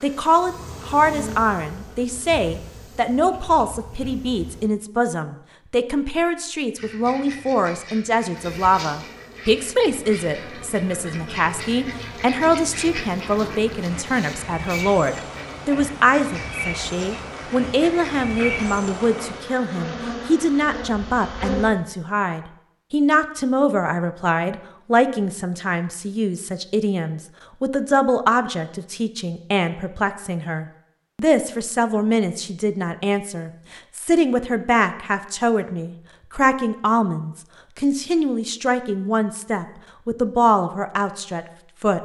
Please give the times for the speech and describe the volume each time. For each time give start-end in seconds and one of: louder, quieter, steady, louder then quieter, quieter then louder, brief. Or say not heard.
0.0-42.0 steady.